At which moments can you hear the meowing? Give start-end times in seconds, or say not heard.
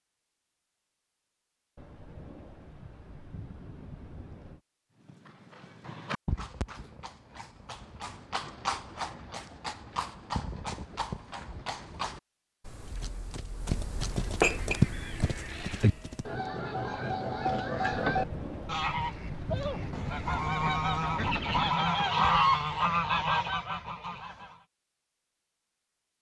not heard.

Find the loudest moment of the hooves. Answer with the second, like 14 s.
15 s.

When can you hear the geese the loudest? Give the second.
22 s.